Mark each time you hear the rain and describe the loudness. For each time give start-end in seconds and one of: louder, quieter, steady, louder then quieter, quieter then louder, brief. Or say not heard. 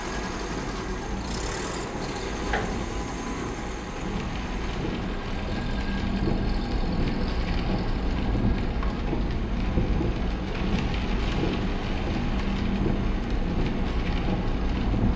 0.0-15.1 louder.